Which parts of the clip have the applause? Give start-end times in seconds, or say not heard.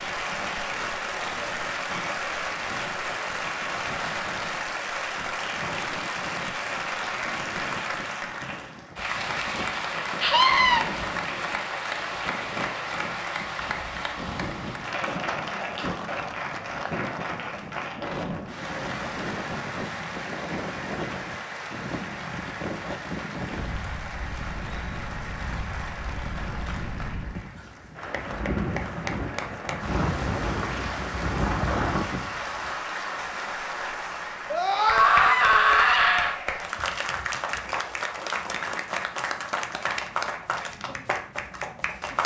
0.0-42.2.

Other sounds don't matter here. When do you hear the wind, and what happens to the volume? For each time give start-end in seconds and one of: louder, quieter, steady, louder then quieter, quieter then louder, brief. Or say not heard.
0.0-32.7 louder.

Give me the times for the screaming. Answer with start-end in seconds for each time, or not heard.
10.2-10.8, 34.5-36.4.